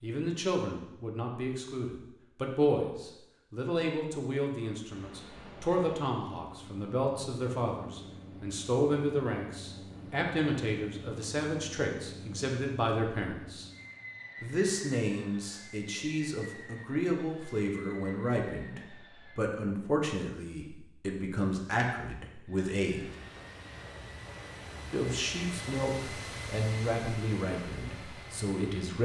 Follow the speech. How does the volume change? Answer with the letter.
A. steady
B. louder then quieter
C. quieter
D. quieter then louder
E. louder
A.